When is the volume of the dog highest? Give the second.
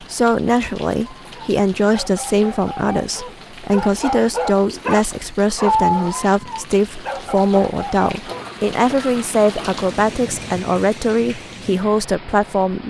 6 s.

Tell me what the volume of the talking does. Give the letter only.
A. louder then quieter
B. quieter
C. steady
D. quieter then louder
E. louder
C.